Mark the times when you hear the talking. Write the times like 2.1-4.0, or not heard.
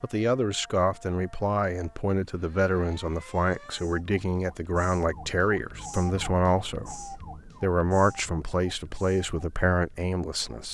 0.0-10.6.